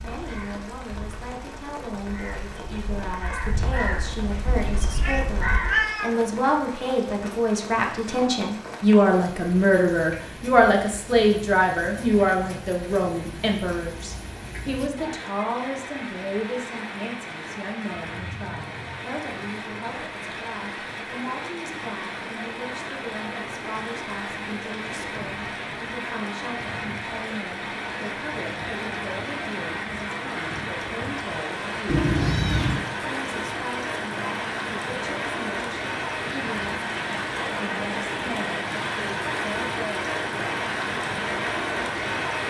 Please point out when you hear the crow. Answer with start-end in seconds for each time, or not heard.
0.0-5.8.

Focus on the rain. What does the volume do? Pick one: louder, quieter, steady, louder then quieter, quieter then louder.
louder.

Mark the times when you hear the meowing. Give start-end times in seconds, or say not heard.
3.8-6.1, 31.9-32.9.